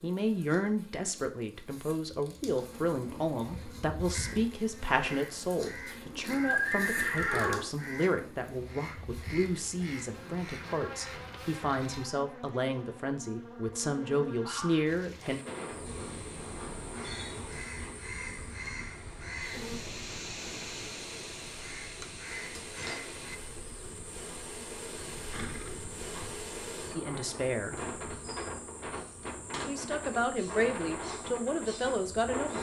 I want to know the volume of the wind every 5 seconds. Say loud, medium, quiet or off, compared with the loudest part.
off, off, off, medium, medium, loud, loud.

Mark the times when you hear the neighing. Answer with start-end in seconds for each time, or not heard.
6.3-7.7, 25.2-26.4.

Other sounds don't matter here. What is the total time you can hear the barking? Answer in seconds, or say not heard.
not heard.